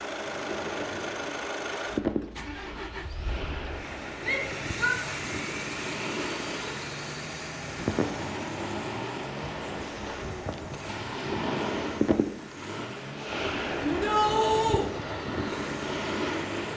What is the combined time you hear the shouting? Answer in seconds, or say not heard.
2 s.